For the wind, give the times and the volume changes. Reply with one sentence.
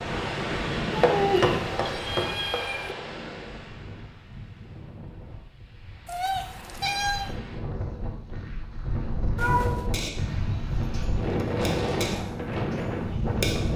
The wind can be heard from 0.0 to 13.7 s, getting quieter then louder.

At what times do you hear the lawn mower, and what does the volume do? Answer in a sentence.
The lawn mower can't be heard in this clip.